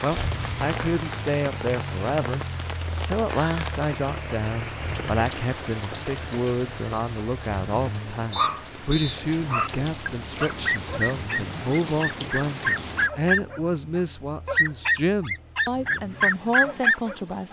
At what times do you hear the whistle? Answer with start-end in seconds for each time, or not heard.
8.3-9.2.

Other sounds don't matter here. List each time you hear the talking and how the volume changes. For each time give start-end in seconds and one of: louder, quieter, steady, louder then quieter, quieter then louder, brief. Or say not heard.
0.0-17.4 steady.